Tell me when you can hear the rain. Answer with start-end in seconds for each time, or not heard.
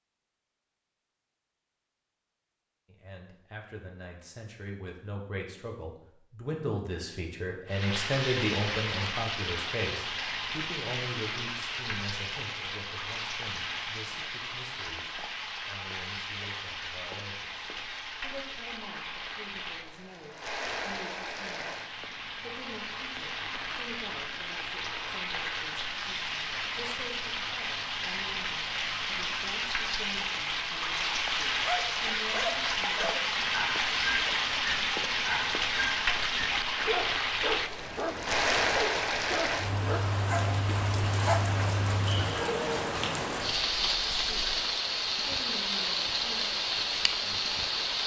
7.7-48.0.